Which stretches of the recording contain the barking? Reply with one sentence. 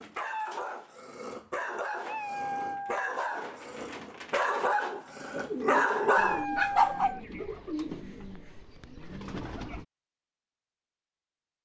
You can hear the barking from 0.0 to 7.2 s.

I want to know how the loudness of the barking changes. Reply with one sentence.
The volume of the barking goes up.